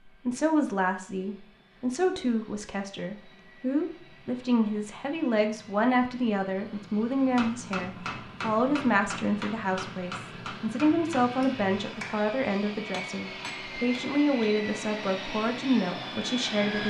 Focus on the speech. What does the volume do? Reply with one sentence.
The loudness of the speech stays about the same.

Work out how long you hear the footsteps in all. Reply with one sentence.
You can't hear the footsteps here.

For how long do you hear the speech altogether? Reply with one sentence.
The speech can be heard for 17 seconds in total.